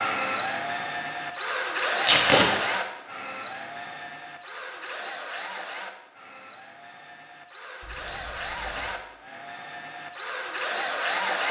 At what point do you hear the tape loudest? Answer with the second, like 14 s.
2 s.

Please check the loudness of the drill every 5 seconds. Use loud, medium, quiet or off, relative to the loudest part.
loud, medium, loud.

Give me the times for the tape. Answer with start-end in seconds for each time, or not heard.
2.0-2.5, 7.8-8.8.